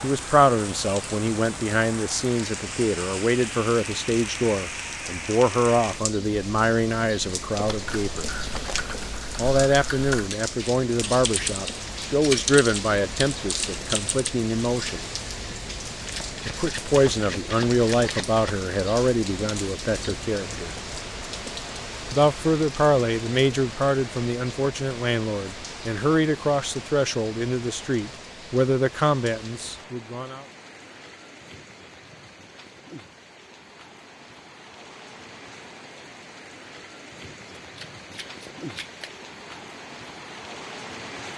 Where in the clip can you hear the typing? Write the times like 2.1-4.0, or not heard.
7.8-14.3.